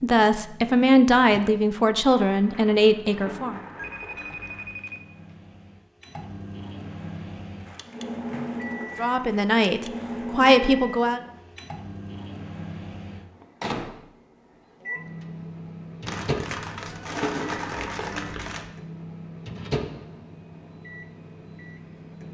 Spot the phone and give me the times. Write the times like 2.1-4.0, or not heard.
3.8-5.3.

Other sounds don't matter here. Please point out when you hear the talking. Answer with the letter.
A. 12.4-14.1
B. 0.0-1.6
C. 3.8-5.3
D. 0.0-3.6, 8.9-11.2
D.